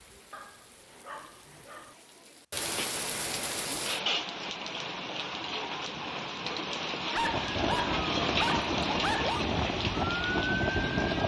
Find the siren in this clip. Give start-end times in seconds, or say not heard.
7.2-11.2.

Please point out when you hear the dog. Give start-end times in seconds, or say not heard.
0.3-1.9, 7.1-9.4.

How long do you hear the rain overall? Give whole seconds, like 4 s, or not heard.
11 s.